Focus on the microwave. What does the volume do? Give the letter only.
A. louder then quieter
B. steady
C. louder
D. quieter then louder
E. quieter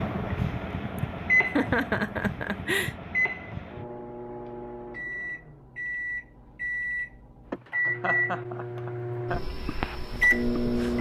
D.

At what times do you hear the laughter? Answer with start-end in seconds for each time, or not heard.
0.9-3.0, 7.5-9.4.